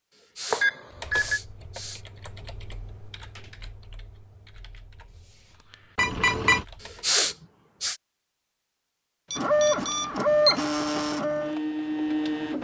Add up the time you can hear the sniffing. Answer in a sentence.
You can hear the sniffing for 3 seconds altogether.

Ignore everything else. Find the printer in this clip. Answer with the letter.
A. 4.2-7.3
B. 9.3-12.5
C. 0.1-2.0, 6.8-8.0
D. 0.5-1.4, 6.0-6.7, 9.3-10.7
B.